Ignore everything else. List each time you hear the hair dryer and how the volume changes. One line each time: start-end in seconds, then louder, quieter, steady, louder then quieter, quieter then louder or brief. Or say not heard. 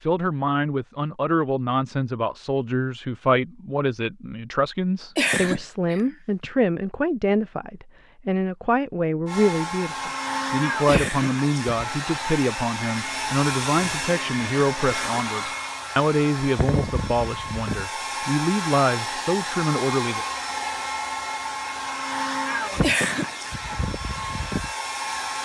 9.2-25.4 steady.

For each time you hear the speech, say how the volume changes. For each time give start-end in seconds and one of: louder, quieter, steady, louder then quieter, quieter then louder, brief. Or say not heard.
0.0-20.2 steady.